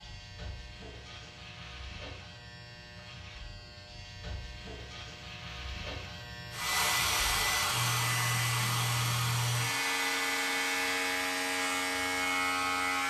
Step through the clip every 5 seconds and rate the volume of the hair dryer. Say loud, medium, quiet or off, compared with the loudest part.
off, loud, medium.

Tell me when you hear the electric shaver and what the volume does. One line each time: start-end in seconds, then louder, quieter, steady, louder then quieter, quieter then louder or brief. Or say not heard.
0.0-13.0 louder.